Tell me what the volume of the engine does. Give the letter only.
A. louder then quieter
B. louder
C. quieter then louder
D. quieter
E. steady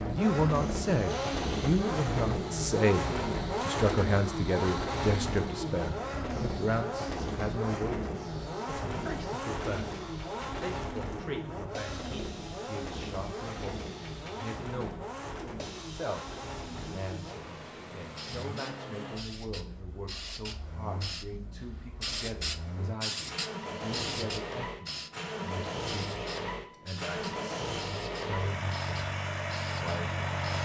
C.